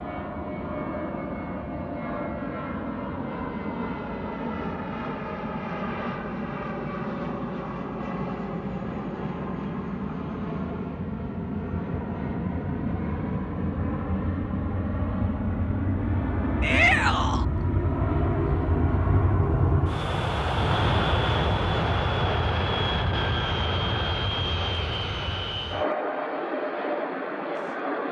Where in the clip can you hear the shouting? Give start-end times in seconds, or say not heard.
16.6-17.4.